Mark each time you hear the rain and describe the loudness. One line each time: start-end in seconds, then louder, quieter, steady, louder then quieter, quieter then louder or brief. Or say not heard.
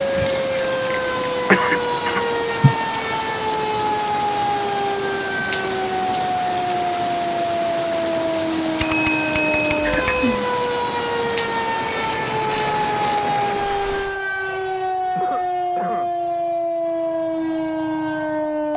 0.0-14.2 steady.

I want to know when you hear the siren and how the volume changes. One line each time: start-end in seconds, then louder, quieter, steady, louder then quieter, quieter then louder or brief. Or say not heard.
0.0-18.7 steady.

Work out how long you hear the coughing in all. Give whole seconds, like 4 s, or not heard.
3 s.